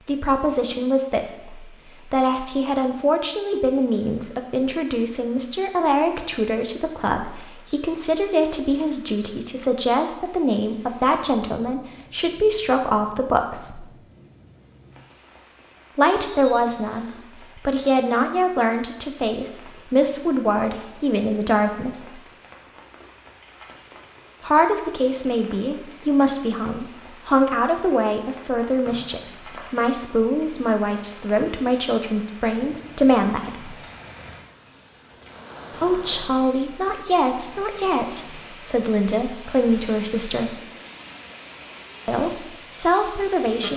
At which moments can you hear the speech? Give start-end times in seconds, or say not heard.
0.1-13.8, 15.9-22.1, 24.4-33.7, 35.7-40.5, 42.0-43.7.